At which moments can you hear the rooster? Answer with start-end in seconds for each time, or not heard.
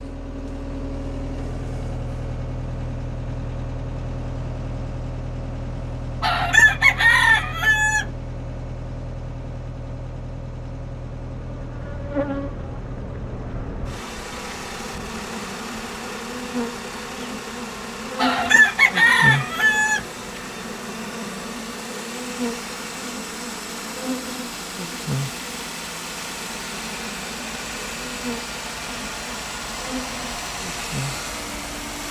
6.2-8.1, 18.1-20.1.